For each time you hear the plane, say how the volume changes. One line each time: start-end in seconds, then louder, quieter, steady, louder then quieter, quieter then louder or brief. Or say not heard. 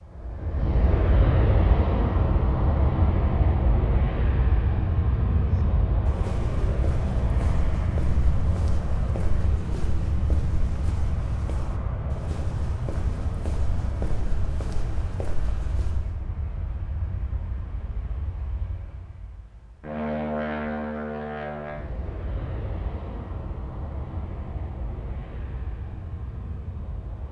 0.0-27.2 quieter.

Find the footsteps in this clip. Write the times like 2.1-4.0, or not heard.
5.5-16.1.